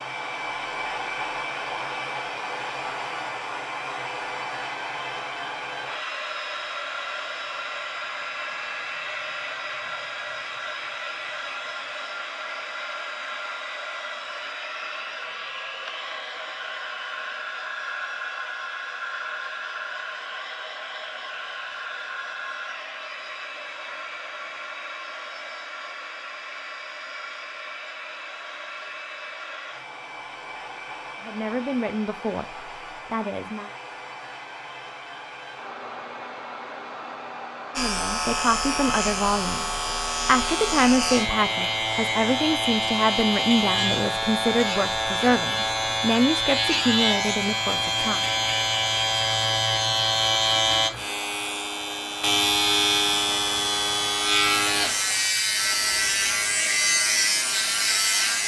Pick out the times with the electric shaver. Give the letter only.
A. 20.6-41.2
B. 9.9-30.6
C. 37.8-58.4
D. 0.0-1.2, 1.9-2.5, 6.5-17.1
C.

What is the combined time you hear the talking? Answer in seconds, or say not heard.
12 s.